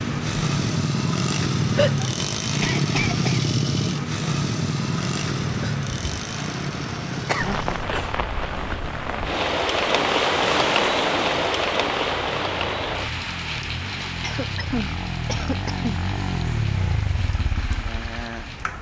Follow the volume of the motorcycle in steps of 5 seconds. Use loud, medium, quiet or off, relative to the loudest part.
loud, medium, quiet, medium.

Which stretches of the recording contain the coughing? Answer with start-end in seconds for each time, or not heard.
1.8-3.5, 7.2-8.1, 14.2-15.9.